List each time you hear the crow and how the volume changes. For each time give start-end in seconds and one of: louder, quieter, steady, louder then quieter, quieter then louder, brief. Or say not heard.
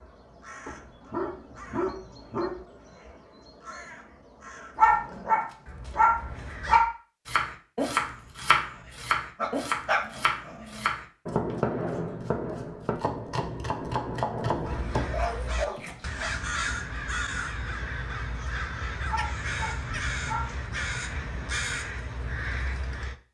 0.0-6.8 steady
14.6-23.1 steady.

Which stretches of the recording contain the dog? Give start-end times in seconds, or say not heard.
0.7-2.5, 4.8-6.8, 9.4-10.8, 14.4-16.4, 19.1-20.6.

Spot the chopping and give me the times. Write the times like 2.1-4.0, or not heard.
7.2-16.0.